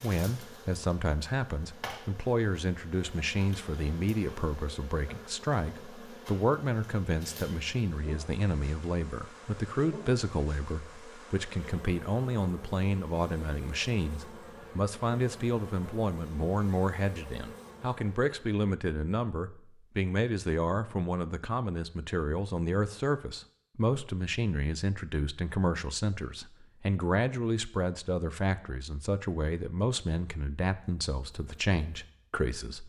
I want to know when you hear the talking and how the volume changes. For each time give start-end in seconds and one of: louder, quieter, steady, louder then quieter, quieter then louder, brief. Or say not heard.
0.0-32.8 steady.